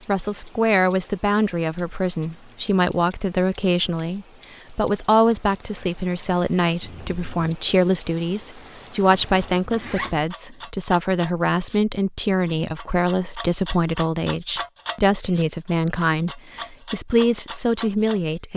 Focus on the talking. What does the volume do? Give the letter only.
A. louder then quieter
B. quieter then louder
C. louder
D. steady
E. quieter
D.